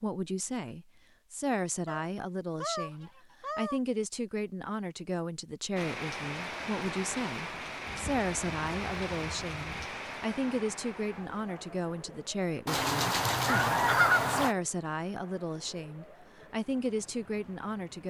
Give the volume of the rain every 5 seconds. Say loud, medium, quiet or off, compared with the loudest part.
off, loud, medium, quiet.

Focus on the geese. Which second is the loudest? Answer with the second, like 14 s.
14 s.